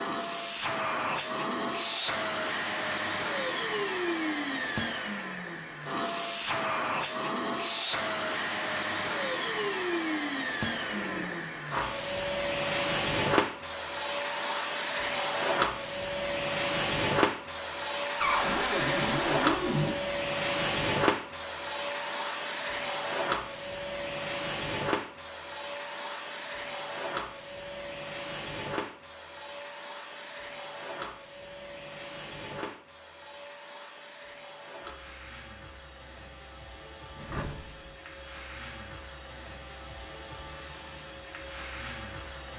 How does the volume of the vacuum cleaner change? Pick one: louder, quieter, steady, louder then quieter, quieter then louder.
quieter.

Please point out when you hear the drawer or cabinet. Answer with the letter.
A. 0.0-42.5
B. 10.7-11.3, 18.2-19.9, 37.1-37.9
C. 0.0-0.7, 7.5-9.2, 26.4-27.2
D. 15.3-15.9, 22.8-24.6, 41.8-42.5
B.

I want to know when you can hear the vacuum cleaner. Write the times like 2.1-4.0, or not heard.
0.0-42.5.